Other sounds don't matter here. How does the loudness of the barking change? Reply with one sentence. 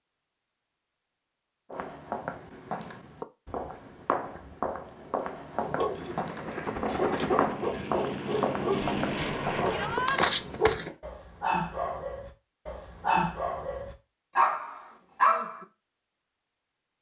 The volume of the barking goes up.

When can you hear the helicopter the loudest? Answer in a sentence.
The volume of the helicopter peaks at 9 seconds.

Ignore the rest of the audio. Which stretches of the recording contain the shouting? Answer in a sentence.
The shouting can be heard from 9.7 to 10.2 s.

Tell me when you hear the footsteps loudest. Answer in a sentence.
The loudest moment of the footsteps is at 10 seconds.